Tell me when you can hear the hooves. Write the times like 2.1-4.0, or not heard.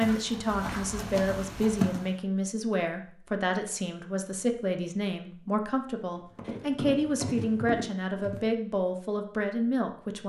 0.0-2.1, 6.2-8.5.